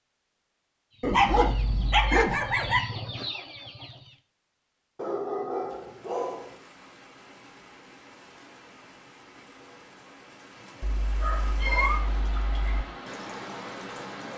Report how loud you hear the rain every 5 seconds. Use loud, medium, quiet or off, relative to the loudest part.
off, medium, loud.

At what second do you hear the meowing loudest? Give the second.
12 s.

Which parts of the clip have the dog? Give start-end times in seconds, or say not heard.
1.0-2.8, 5.0-6.5, 10.6-12.7.